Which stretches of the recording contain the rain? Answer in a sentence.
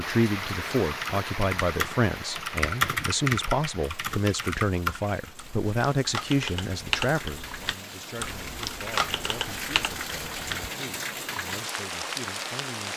The rain can be heard from 0.0 to 12.9 s.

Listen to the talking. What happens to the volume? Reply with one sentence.
The volume of the talking goes down.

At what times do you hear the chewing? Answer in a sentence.
You can't hear the chewing here.